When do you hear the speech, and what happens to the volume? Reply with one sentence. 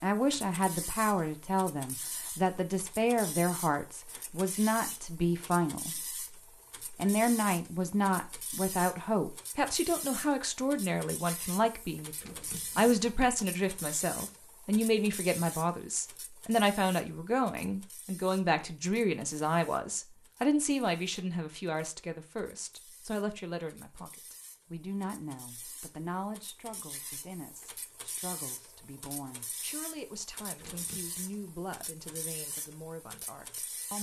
The speech can be heard from 0.0 to 6.2 s, at a steady volume; and from 6.9 to 33.9 s, getting quieter.